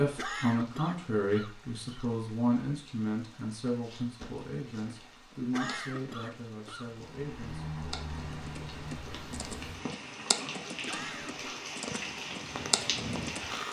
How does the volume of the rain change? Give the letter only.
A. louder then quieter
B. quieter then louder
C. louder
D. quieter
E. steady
C.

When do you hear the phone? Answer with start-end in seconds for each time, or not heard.
not heard.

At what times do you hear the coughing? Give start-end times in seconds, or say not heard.
0.1-2.1, 5.5-6.9, 10.8-11.5.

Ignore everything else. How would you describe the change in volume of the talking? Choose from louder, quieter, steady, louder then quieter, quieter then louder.
quieter.